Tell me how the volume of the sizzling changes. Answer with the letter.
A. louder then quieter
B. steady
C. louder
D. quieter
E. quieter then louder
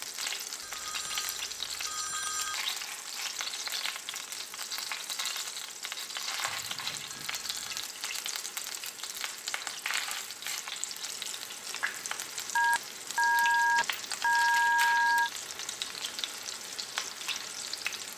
B.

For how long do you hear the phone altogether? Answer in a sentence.
You can hear the phone for 6 seconds altogether.